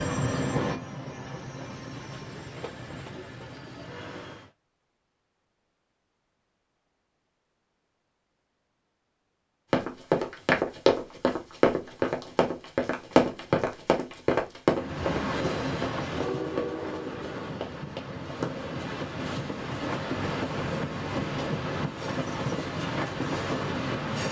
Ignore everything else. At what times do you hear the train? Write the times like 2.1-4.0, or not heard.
0.0-4.5, 14.8-24.2.